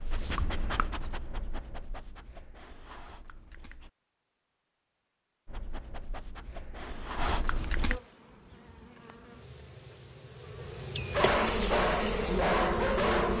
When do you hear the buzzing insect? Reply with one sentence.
You can hear the buzzing insect from 6.8 to 13.3 s.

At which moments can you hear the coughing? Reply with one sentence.
You can't hear the coughing here.